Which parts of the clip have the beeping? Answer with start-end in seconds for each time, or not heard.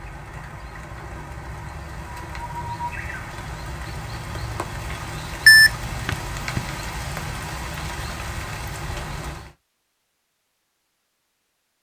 5.5-6.7.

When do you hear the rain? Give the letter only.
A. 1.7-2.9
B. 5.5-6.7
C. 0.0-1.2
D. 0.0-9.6
D.